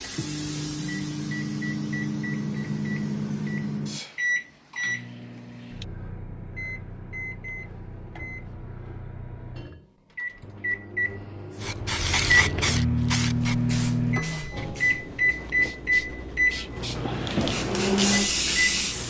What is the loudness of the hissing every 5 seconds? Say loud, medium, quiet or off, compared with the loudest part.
quiet, off, loud, loud.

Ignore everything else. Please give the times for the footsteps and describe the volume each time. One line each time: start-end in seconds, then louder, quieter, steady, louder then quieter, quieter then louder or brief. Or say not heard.
not heard.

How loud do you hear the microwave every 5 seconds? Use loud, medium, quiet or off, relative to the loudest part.
loud, quiet, loud, loud.